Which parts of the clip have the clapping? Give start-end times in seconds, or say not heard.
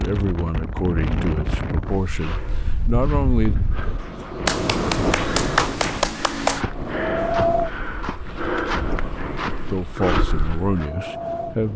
4.5-6.7.